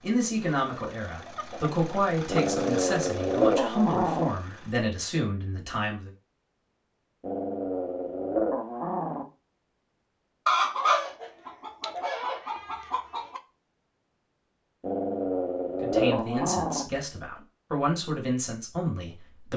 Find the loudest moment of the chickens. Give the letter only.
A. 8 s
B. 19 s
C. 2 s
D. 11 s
D.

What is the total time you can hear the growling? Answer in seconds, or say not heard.
6 s.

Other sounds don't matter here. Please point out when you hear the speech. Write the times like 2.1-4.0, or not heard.
0.0-6.1, 15.8-19.5.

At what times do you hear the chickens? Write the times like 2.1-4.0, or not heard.
0.6-2.5, 10.4-13.4.